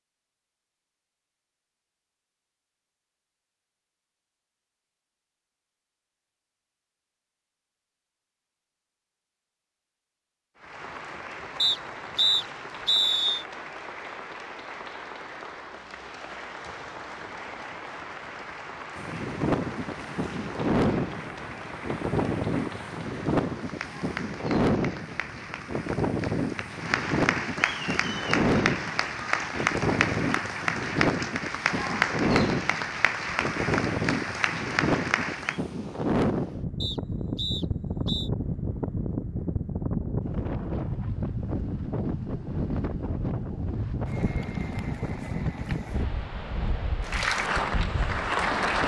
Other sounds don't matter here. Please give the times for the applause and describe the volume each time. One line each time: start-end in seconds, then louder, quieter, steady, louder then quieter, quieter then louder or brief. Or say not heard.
10.6-35.6 louder
47.0-48.8 brief.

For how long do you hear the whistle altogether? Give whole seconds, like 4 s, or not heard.
3 s.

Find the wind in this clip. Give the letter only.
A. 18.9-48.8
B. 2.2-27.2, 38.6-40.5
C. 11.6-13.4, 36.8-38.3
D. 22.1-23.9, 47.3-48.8
A.